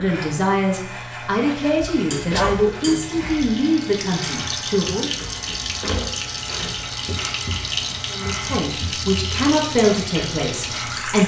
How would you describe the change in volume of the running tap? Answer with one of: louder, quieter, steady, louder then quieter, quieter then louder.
louder.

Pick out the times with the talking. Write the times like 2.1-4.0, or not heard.
0.0-5.2, 8.1-11.2.